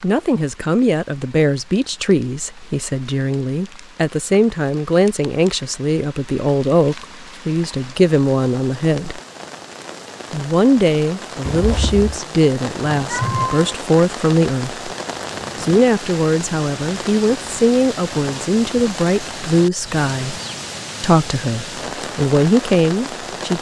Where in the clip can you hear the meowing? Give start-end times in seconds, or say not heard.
12.9-13.8.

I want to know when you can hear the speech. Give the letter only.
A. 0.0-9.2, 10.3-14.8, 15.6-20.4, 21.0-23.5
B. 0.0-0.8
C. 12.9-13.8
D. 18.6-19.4
A.